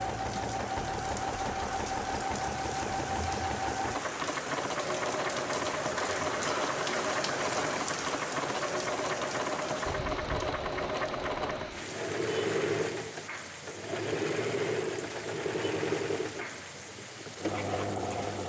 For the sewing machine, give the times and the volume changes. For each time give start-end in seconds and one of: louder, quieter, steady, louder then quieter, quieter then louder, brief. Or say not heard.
0.0-18.4 steady.